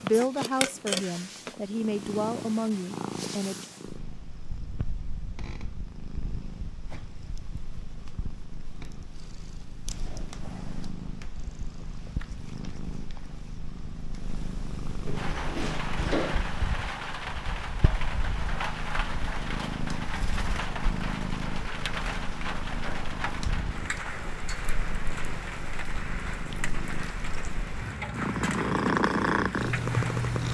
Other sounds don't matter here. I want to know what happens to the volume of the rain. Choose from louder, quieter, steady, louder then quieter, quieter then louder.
steady.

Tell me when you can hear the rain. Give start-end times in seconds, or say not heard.
15.2-30.4.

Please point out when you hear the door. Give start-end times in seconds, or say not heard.
15.1-16.4.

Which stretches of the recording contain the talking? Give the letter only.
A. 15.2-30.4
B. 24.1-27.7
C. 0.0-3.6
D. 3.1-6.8
C.